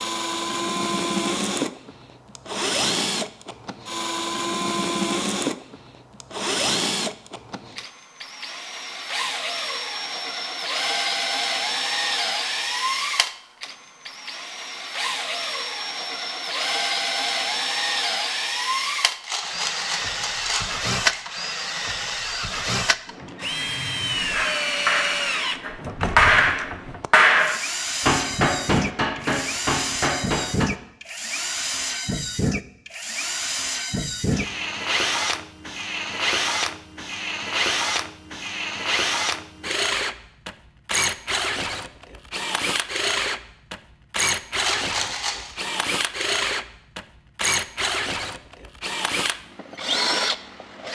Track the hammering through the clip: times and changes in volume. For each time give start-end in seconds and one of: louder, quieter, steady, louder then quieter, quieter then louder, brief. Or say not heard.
24.3-30.7 louder then quieter.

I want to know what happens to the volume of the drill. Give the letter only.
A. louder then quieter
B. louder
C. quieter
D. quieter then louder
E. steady
E.